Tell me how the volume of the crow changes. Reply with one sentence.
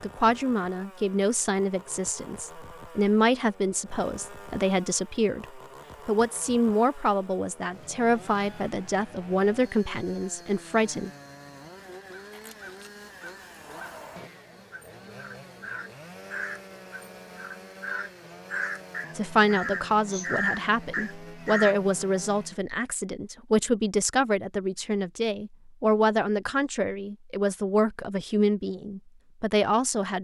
The volume of the crow goes up.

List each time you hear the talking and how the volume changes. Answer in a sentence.
You can hear the talking from 0.0 to 11.1 s, at a steady volume; and from 19.1 to 30.1 s, at a steady volume.